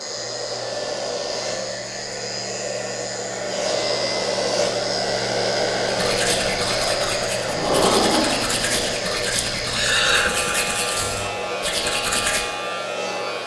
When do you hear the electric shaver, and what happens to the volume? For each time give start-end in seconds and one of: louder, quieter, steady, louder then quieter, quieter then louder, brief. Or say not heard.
0.0-13.4 steady.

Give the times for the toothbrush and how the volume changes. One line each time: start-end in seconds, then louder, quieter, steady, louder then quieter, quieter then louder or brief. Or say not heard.
5.8-12.4 steady.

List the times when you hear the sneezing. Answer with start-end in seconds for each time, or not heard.
9.6-10.5.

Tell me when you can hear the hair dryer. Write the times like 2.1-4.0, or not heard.
0.0-13.4.